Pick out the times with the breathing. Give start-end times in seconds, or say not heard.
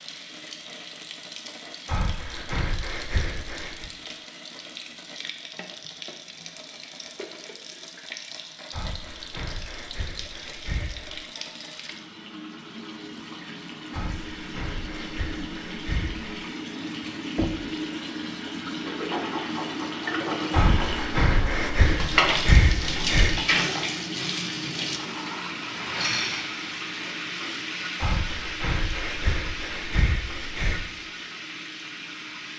1.9-3.9, 8.7-11.2, 13.9-16.3, 20.5-23.4, 28.0-30.9.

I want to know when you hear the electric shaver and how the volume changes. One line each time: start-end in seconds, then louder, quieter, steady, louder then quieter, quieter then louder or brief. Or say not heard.
not heard.